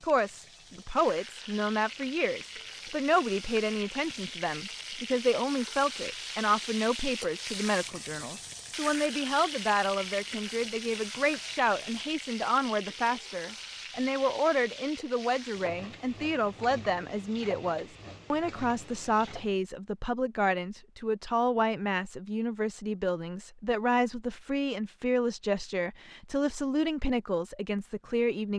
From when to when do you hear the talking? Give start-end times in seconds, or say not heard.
0.0-28.5.